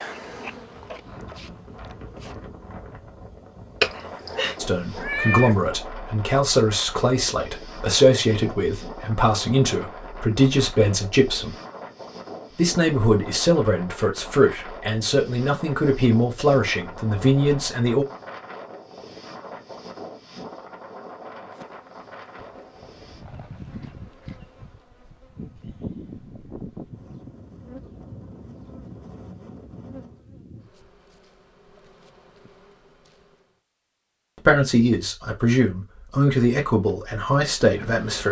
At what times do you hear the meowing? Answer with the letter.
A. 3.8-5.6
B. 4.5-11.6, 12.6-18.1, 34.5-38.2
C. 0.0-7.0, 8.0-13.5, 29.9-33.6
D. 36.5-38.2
A.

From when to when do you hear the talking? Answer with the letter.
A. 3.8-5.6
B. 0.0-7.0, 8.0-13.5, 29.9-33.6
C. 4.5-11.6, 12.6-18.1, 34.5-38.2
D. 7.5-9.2
C.